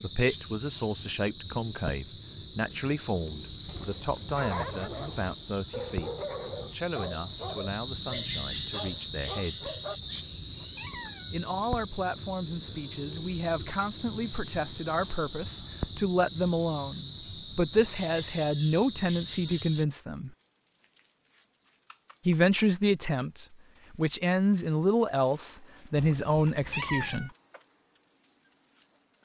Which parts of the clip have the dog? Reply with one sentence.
The dog can be heard from 4.2 to 10.0 s.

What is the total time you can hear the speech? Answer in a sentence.
You can hear the speech for 24 seconds altogether.